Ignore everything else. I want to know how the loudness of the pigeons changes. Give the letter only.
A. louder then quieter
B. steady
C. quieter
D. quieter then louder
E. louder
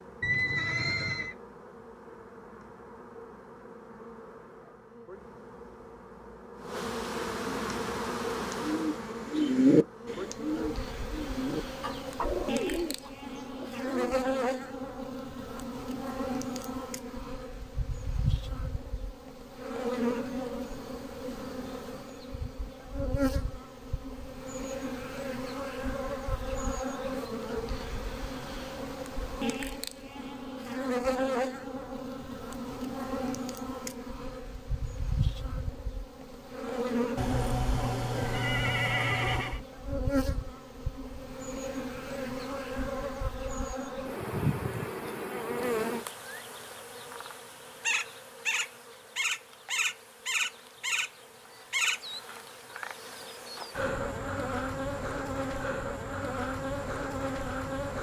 A.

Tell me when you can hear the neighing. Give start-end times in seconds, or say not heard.
0.2-1.4, 37.1-39.6.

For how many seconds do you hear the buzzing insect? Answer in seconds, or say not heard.
58 s.